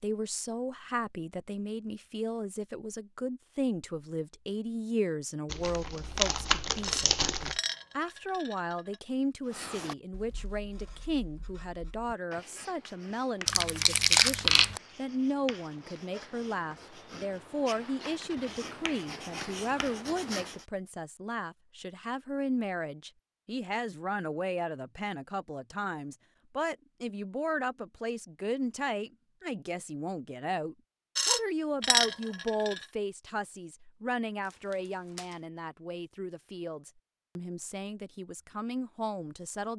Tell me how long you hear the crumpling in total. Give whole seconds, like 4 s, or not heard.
4 s.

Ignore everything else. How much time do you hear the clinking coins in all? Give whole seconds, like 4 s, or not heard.
4 s.